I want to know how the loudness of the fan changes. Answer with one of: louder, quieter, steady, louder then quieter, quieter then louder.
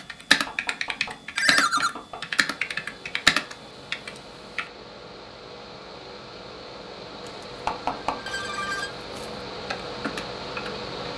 louder.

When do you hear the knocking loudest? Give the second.
8 s.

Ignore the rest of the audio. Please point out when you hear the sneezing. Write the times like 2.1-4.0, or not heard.
not heard.